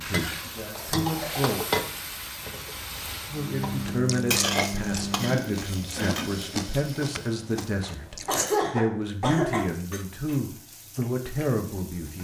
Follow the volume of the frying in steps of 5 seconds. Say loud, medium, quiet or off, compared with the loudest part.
loud, medium, quiet.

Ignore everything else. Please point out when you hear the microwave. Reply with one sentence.
The microwave can be heard from 3.3 to 5.3 s.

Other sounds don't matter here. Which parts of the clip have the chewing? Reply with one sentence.
You can hear the chewing from 3.8 to 8.6 s.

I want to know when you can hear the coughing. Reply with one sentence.
The coughing can be heard from 0.6 to 1.6 s, from 5.1 to 6.3 s and from 8.2 to 9.7 s.